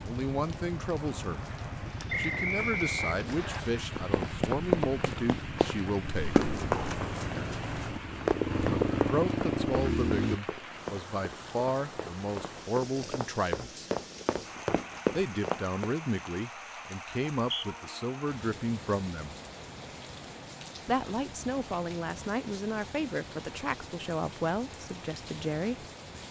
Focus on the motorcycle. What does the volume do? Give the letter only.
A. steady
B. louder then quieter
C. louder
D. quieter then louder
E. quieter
C.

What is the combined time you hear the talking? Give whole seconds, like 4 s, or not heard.
20 s.